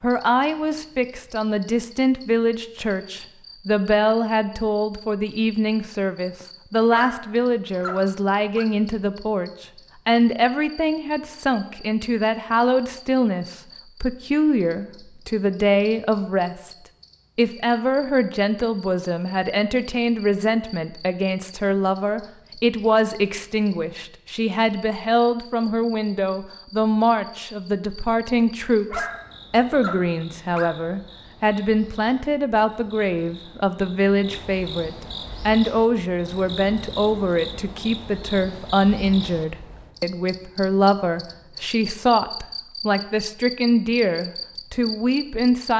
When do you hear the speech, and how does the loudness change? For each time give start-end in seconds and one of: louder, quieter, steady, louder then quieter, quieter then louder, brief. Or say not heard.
0.0-16.7 steady
17.4-45.7 steady.